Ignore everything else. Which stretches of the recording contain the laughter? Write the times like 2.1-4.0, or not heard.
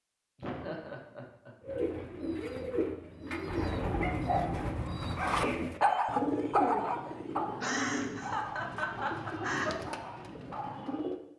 0.3-2.4, 7.6-9.8.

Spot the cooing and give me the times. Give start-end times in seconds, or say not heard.
1.6-11.2.